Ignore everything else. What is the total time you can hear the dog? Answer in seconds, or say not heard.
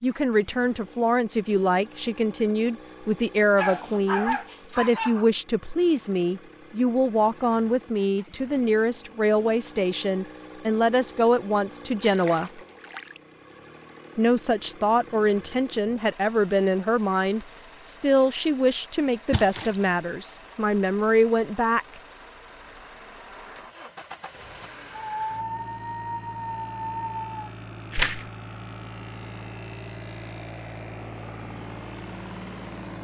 4 s.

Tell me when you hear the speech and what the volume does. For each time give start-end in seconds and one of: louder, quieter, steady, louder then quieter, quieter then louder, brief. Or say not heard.
0.0-12.6 steady
14.2-21.9 steady.